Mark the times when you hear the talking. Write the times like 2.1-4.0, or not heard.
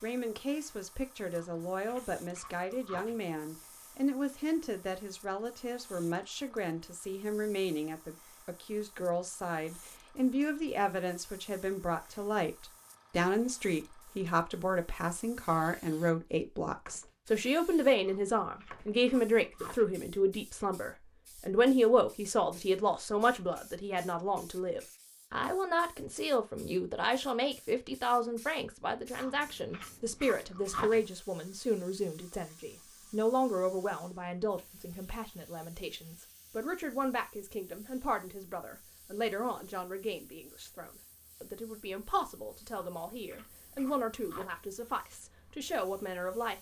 0.0-46.5.